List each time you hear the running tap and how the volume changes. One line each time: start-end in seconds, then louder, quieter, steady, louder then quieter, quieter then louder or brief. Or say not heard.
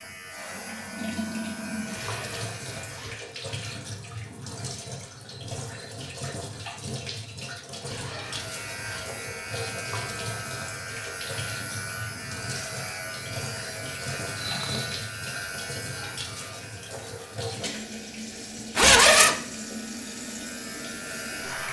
0.0-21.6 steady.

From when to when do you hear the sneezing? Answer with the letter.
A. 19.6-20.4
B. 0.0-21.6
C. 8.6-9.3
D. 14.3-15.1
D.